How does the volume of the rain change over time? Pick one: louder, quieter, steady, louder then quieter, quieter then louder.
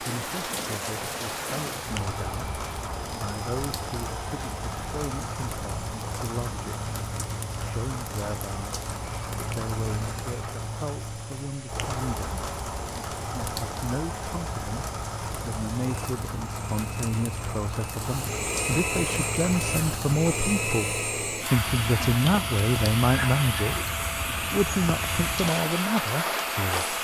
steady.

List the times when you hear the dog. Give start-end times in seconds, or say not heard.
not heard.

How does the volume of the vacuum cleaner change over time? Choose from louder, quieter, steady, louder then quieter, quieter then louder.
louder.